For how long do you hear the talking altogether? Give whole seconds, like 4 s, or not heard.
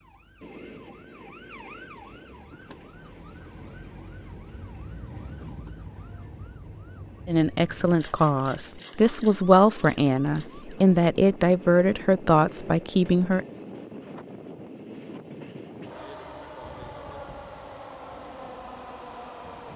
6 s.